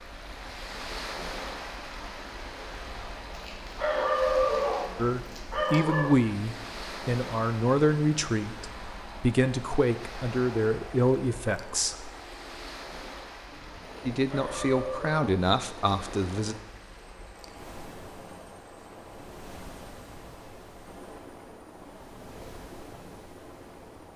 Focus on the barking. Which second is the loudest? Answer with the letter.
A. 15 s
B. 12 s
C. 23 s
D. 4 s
D.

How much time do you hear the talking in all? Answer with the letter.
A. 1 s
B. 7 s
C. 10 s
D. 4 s
C.